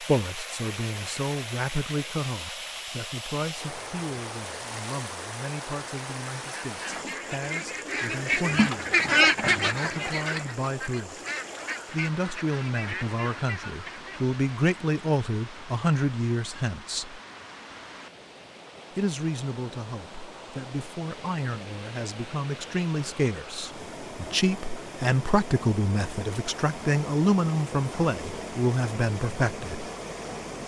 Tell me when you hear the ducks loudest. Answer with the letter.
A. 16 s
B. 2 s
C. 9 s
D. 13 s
C.